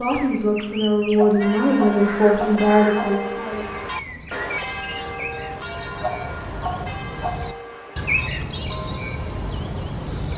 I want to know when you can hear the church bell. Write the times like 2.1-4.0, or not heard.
1.4-9.3.